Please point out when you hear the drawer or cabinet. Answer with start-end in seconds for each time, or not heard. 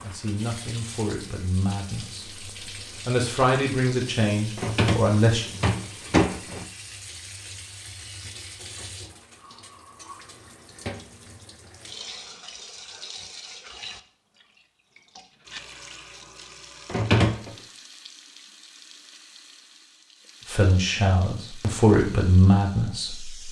4.5-6.7, 16.9-17.6.